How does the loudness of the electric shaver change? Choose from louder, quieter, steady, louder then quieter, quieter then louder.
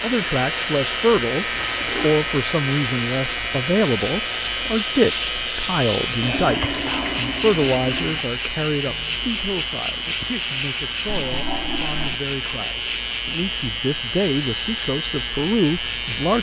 steady.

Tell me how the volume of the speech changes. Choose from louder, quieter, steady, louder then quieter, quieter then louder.
quieter then louder.